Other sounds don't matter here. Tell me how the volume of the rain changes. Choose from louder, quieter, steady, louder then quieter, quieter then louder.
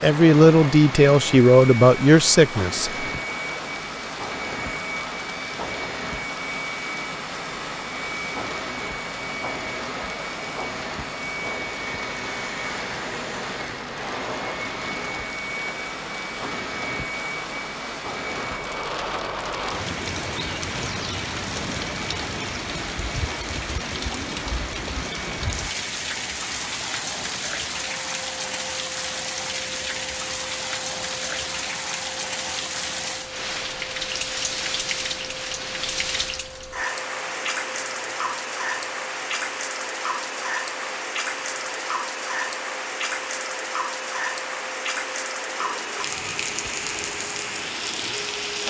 louder.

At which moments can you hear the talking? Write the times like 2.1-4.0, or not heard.
0.0-3.0.